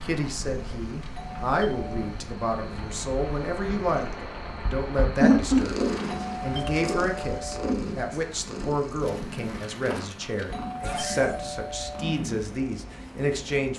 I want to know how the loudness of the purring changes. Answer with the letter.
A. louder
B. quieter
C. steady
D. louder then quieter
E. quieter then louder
D.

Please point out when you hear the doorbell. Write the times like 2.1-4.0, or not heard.
1.0-2.1, 6.0-7.7, 10.3-12.2.